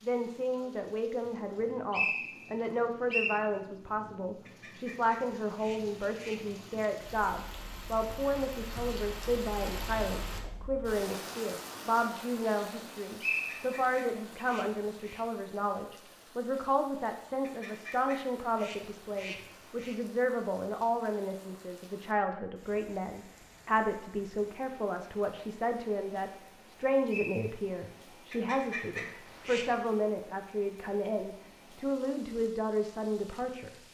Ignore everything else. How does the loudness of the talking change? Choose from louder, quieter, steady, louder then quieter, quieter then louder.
steady.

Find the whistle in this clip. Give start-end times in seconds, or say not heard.
1.5-3.4, 13.2-14.4, 27.1-27.5.